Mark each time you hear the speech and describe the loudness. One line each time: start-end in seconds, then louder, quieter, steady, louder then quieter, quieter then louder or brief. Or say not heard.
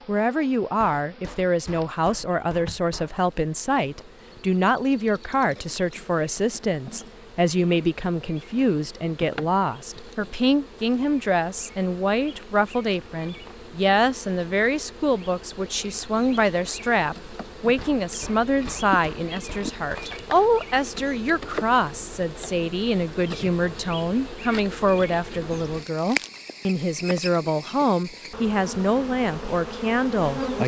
0.1-30.4 steady.